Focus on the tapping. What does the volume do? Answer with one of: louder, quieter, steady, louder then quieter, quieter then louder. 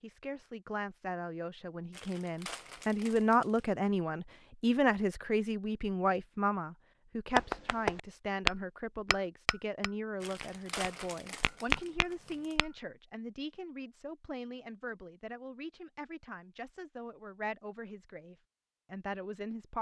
quieter then louder.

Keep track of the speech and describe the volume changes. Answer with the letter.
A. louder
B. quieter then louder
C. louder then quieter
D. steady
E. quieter
E.